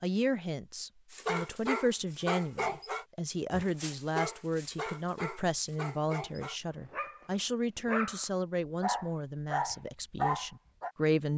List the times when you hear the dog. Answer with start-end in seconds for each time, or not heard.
1.1-10.9.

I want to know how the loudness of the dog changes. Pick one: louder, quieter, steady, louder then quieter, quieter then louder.
quieter then louder.